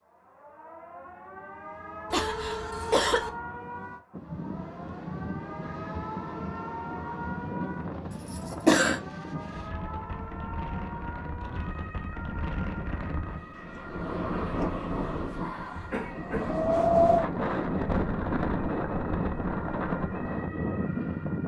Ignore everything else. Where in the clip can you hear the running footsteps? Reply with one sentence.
You can't hear the running footsteps here.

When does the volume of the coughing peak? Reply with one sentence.
The loudest moment of the coughing is at 9 seconds.